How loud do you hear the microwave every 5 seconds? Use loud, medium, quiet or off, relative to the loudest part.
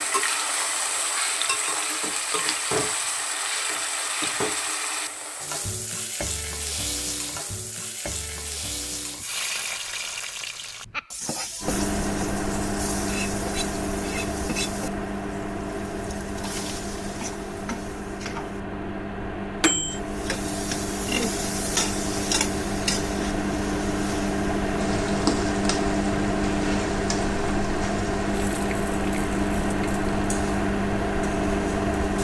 off, off, loud, medium, loud, loud, loud.